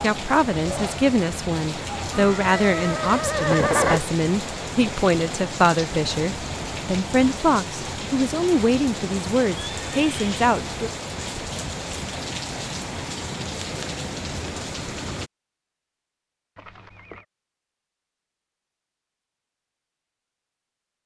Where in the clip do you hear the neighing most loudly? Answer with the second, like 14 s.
4 s.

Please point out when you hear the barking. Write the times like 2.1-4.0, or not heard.
not heard.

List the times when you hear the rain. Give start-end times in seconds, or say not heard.
0.0-15.3.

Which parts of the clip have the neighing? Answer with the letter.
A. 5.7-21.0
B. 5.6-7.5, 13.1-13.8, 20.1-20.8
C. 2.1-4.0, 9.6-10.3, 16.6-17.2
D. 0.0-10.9
C.